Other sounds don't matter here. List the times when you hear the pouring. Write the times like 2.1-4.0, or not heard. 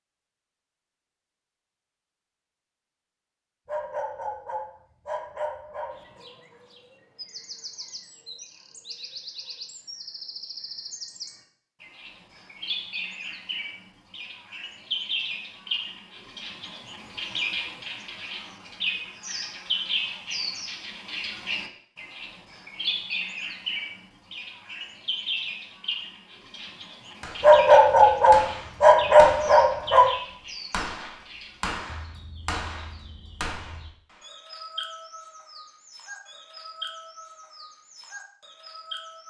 not heard.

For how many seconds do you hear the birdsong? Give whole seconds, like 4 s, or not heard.
33 s.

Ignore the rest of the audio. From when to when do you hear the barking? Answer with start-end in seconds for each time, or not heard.
3.6-6.2, 27.4-30.1.